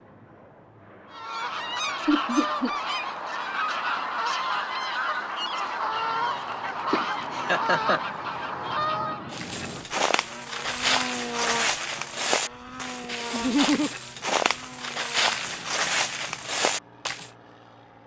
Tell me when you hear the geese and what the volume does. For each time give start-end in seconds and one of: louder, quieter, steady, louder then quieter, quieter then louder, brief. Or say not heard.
1.1-9.4 steady.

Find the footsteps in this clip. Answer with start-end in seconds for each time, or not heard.
9.3-17.3.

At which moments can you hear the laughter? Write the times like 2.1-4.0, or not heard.
2.0-2.7, 6.9-8.1, 13.3-13.9.